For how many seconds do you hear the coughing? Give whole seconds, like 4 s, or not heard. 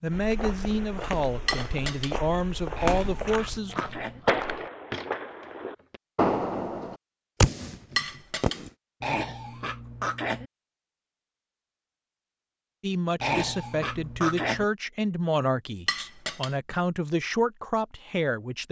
4 s.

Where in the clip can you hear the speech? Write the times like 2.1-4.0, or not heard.
0.0-3.8, 12.8-18.6.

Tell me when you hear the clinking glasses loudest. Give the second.
8 s.